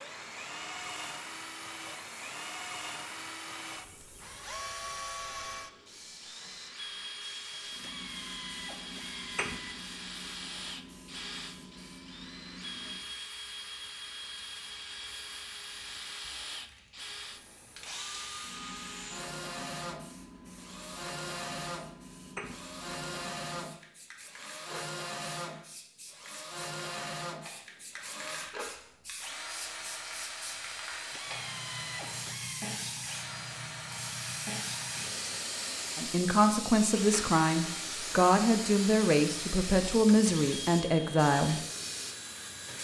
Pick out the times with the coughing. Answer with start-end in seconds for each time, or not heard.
not heard.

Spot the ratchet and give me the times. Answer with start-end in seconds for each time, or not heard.
7.8-9.8, 31.1-32.8.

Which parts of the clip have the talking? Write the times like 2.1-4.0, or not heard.
36.0-41.6.